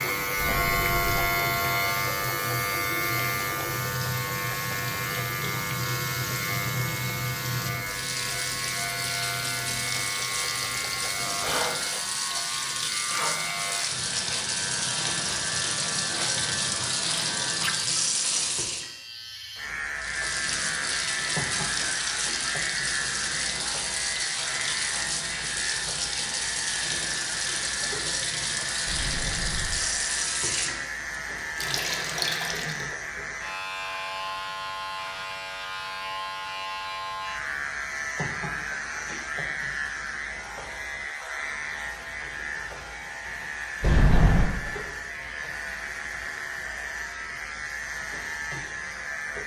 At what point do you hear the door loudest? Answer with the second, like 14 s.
44 s.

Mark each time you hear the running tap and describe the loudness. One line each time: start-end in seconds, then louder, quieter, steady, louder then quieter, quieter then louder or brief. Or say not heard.
0.0-18.9 louder
19.9-32.9 steady.